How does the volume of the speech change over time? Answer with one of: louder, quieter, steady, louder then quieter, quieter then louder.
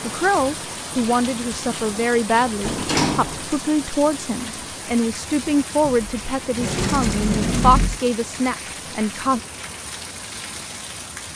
steady.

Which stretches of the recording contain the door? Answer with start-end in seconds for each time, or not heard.
2.6-3.5, 5.8-8.0.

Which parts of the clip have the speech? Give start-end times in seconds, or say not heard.
0.0-9.4.